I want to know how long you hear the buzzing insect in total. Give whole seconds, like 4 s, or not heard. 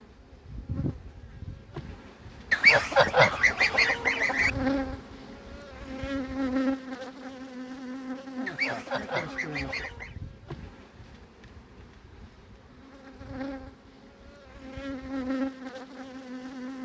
17 s.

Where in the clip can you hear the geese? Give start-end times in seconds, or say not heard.
2.5-4.5, 8.4-10.1.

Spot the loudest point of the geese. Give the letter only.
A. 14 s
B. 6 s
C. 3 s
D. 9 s
C.